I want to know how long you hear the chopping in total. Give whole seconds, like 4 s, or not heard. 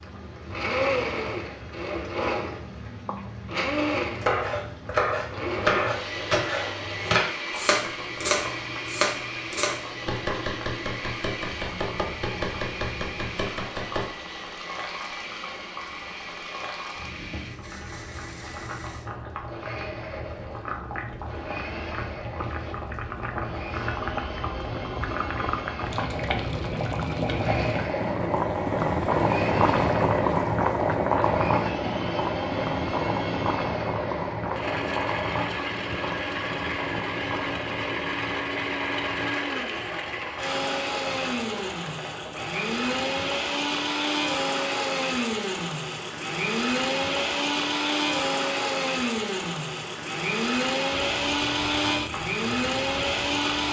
10 s.